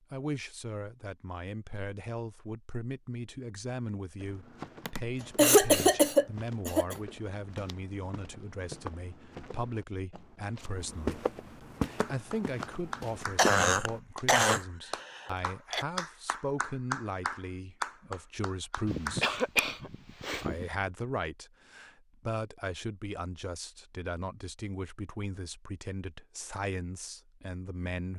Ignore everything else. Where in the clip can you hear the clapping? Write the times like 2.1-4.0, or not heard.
11.9-19.2.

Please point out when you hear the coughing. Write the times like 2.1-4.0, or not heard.
4.8-7.0, 13.3-15.8, 18.9-20.6.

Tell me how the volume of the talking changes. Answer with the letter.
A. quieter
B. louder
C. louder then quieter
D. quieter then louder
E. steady
E.